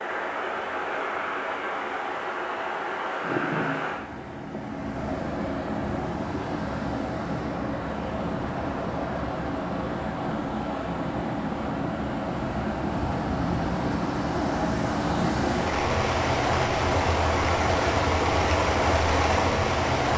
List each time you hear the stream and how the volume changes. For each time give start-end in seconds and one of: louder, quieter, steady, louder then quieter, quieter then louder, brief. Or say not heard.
0.0-20.1 louder.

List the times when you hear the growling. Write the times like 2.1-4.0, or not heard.
3.2-3.9.